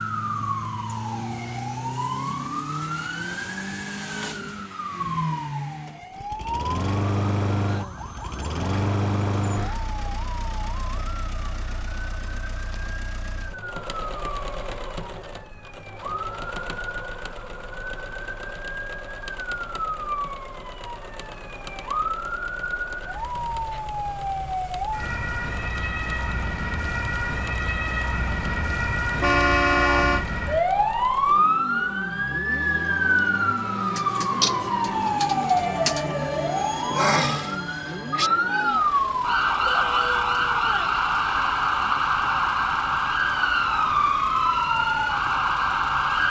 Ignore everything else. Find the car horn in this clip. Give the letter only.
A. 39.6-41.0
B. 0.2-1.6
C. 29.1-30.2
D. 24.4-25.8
C.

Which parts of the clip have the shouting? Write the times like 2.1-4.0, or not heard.
39.6-41.0.